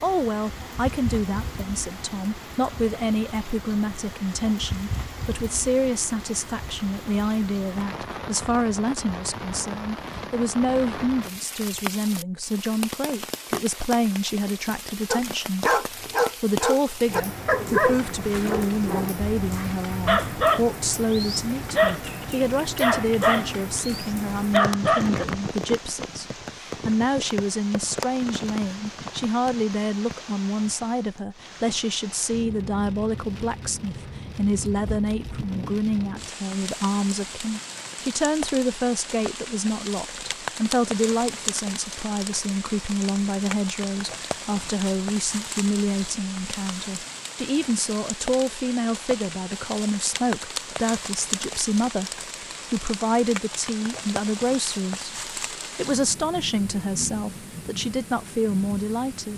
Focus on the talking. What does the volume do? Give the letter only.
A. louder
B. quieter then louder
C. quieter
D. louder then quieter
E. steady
E.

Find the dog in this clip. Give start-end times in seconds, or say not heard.
15.1-25.2.